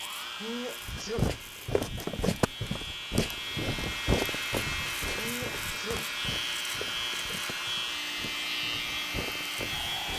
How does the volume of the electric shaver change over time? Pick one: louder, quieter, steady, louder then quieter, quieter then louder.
louder.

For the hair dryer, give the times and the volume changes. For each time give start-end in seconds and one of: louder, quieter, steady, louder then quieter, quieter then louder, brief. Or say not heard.
0.0-10.1 louder.